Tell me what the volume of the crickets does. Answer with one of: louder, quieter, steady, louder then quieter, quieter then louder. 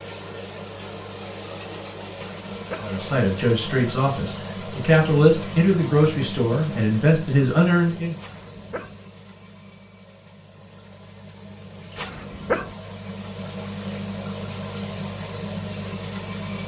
quieter then louder.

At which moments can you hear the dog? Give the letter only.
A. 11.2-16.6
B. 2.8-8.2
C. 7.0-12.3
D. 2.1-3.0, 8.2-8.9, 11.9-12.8
D.